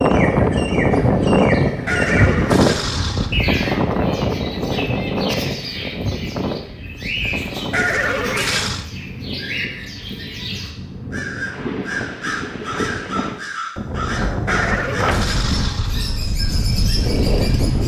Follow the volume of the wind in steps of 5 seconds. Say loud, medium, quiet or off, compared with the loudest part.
loud, medium, medium, medium.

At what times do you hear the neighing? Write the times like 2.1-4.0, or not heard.
1.9-3.4, 7.7-8.8, 14.4-16.3.